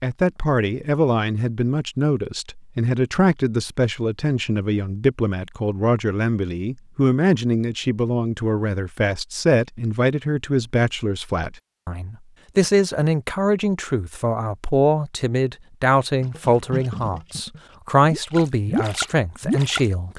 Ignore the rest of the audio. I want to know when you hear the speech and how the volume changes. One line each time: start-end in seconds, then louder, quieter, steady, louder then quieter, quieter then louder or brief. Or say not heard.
0.0-20.1 steady.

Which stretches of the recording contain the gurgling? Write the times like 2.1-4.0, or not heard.
16.2-19.9.